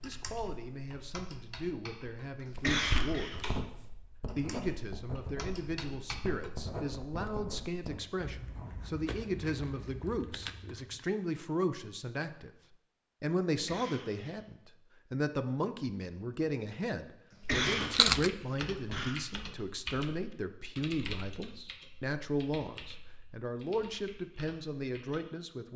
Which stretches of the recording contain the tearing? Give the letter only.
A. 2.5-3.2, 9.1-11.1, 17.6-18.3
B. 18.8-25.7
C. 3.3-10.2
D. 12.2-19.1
A.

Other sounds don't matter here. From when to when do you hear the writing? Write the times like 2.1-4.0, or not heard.
3.3-10.2.